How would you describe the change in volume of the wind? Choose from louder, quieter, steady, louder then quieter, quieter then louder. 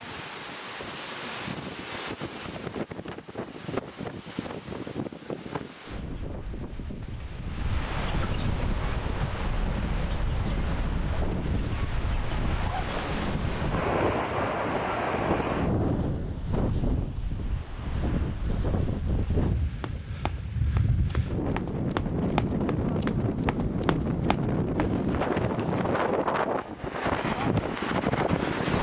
louder.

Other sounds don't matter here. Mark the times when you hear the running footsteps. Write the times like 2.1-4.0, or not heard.
19.8-25.9.